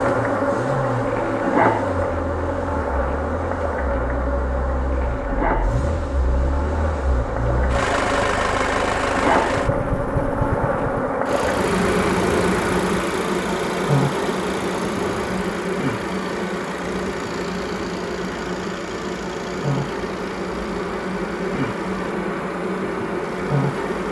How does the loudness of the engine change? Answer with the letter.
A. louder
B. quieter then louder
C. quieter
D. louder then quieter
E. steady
D.